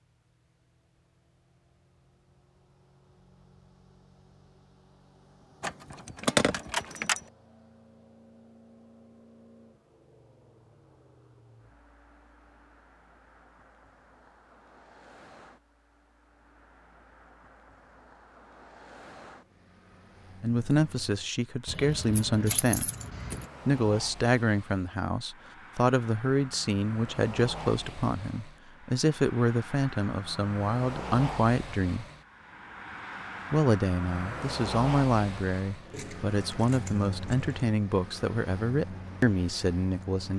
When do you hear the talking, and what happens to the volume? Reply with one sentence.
You can hear the talking briefly from 20.4 to 22.9 s; from 23.6 to 32.0 s, at a steady volume; and from 33.5 to 40.3 s, at a steady volume.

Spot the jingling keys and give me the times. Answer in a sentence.
The jingling keys can be heard from 5.6 to 7.2 s, from 21.6 to 23.4 s and from 35.9 to 37.5 s.